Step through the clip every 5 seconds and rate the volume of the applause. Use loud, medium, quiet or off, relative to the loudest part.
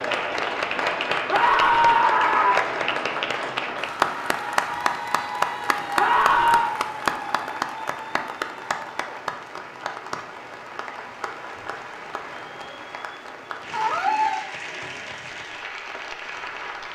loud, loud, medium, medium.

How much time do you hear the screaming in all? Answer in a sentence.
You can hear the screaming for 3 seconds altogether.